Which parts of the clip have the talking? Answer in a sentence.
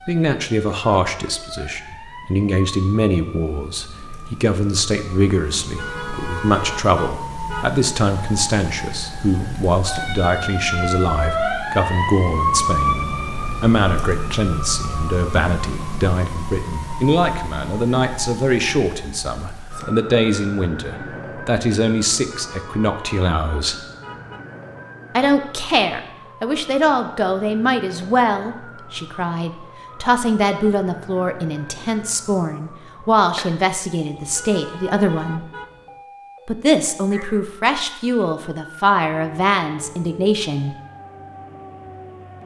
You can hear the talking from 0.1 to 23.9 s, from 25.1 to 35.5 s and from 36.5 to 40.8 s.